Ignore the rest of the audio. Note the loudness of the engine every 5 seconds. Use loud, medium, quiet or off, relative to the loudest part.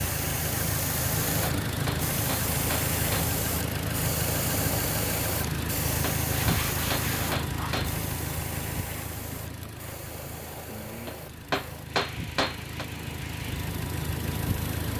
loud, loud, medium.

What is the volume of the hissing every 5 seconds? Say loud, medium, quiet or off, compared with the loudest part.
loud, loud, medium.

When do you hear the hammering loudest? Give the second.
12 s.